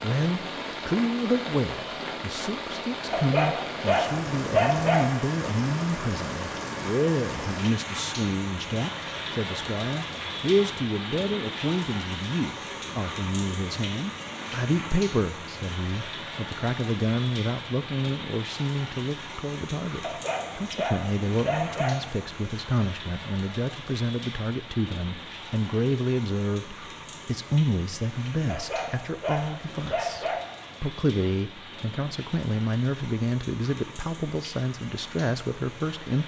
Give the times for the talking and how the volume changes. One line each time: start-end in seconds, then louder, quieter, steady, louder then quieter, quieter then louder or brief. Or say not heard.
0.0-36.2 steady.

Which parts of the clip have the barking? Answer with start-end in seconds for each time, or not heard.
3.1-5.0, 20.0-21.9, 28.4-30.4.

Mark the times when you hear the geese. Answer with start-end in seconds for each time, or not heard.
not heard.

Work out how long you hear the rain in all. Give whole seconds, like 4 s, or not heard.
36 s.